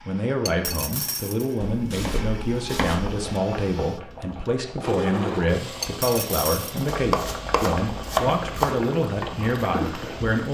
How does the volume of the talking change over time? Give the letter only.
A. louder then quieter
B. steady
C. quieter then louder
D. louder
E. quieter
B.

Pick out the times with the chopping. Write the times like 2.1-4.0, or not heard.
1.6-3.1, 6.9-8.8.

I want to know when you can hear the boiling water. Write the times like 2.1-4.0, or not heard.
3.0-10.4.